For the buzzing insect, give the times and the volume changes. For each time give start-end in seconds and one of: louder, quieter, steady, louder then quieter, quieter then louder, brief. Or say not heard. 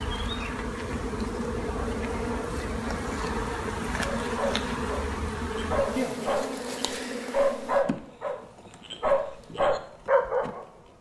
0.0-10.9 quieter.